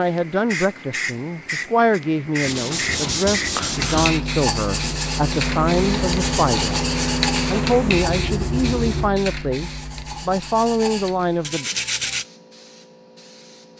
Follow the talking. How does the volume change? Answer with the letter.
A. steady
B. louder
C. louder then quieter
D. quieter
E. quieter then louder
A.